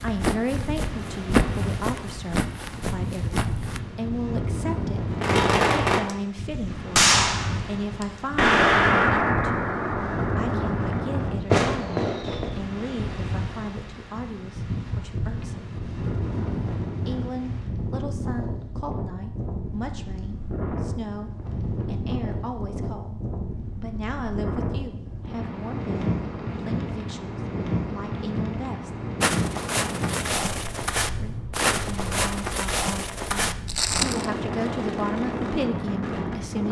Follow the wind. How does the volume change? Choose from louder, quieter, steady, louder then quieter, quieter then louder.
steady.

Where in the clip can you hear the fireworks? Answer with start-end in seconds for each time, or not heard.
5.1-6.1, 7.0-12.6.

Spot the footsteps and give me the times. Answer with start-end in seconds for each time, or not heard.
0.0-3.8, 29.2-34.3.